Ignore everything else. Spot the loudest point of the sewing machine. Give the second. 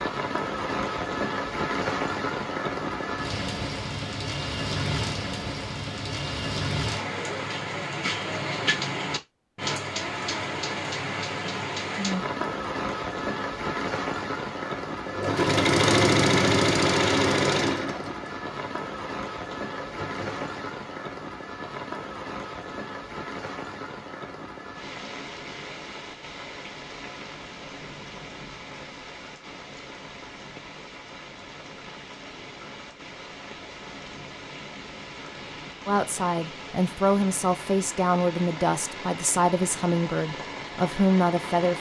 16 s.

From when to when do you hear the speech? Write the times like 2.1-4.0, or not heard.
35.9-41.7.